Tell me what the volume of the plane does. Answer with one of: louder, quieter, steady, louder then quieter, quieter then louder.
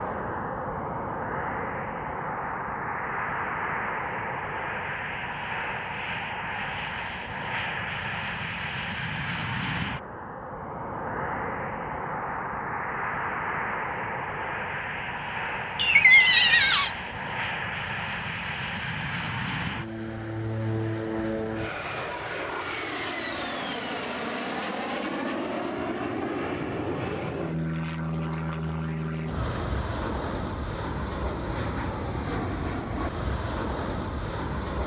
steady.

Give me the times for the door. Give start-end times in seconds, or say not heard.
15.8-16.9.